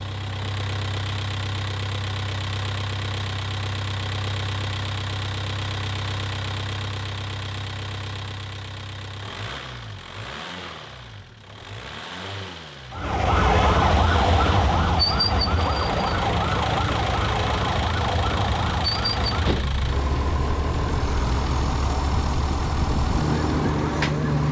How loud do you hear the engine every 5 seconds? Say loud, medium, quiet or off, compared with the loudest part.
loud, medium, medium, loud, loud.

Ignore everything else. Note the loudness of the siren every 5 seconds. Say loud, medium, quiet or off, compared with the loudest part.
off, off, loud, loud, medium.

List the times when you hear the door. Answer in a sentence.
You can't hear the door here.